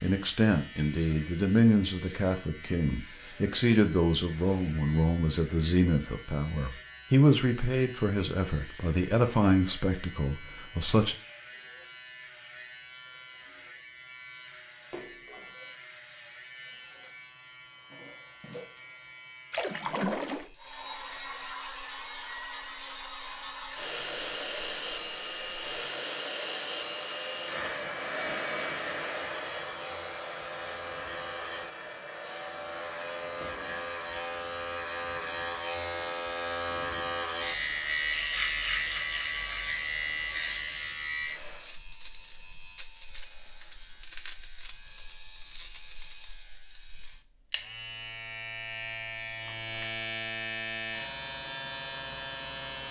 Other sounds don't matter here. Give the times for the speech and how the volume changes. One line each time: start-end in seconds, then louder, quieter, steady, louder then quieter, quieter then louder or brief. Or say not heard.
0.0-11.2 steady.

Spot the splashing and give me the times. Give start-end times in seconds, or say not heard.
14.9-15.6, 19.5-20.5, 49.5-50.0.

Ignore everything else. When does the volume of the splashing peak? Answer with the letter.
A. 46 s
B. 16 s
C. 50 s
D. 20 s
D.